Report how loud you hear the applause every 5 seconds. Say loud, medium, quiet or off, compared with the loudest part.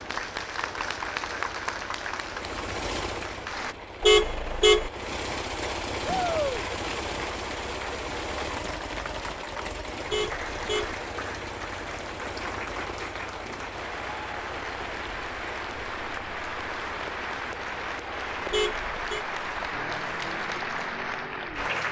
loud, medium, medium, loud, loud.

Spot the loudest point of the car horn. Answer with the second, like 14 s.
4 s.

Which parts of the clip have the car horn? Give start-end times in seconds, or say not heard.
4.0-4.9, 10.1-10.9, 18.5-19.2.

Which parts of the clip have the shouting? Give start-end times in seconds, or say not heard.
6.0-6.7.